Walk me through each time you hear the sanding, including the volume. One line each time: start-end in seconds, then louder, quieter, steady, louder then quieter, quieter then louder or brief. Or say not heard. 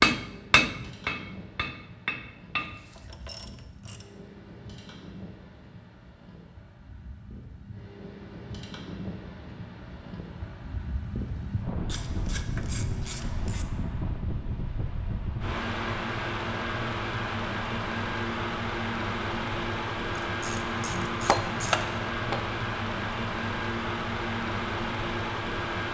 not heard.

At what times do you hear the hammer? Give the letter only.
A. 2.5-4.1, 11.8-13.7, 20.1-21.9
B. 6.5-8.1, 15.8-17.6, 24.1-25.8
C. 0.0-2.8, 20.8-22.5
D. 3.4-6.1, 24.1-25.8
C.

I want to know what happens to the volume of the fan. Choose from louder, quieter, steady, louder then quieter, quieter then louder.
louder.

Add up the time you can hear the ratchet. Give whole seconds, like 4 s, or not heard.
5 s.